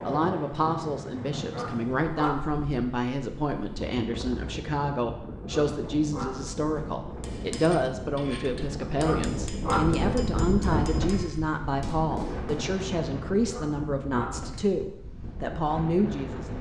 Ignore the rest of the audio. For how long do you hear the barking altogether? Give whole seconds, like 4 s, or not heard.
4 s.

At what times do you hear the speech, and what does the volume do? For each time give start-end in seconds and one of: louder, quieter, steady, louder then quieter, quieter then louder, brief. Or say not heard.
0.0-16.5 steady.